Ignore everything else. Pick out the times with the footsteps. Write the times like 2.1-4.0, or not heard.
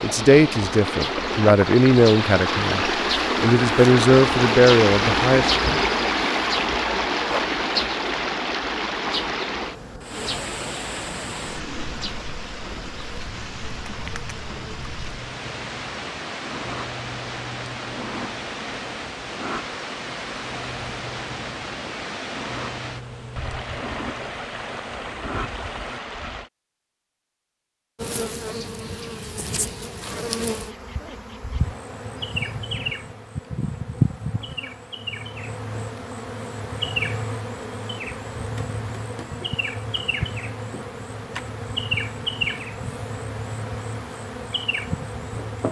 not heard.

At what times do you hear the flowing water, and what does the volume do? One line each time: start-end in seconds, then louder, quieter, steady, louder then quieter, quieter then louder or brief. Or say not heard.
0.0-26.5 quieter.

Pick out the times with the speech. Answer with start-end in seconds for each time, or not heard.
0.0-5.5.